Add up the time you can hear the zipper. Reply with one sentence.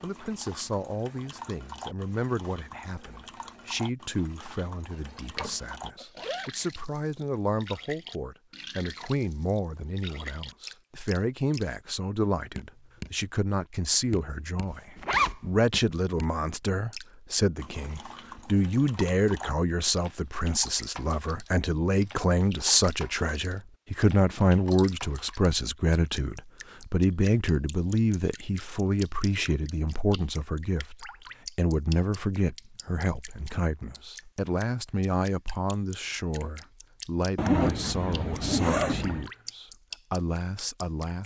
You can hear the zipper for 4 seconds altogether.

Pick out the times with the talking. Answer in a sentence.
You can hear the talking from 0.0 to 41.2 s.